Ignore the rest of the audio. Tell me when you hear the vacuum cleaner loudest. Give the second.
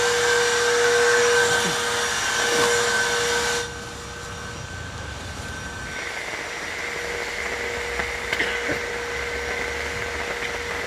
1 s.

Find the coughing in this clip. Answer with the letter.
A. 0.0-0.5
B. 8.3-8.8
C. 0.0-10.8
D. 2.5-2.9
B.